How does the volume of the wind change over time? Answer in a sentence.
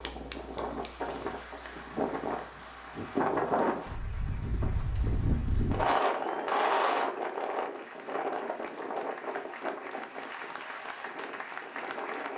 The loudness of the wind goes up, then down.